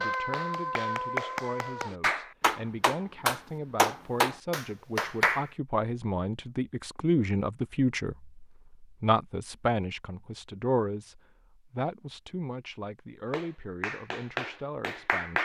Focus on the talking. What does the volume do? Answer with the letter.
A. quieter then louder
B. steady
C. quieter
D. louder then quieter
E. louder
D.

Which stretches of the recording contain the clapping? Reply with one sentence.
You can hear the clapping from 0.0 to 5.5 s and from 13.3 to 15.4 s.